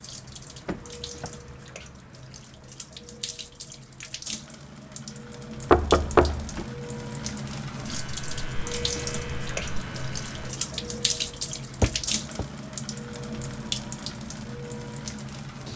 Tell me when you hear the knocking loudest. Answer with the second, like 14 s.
6 s.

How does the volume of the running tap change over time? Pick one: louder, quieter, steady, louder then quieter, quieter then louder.
louder.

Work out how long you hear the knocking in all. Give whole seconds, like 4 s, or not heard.
2 s.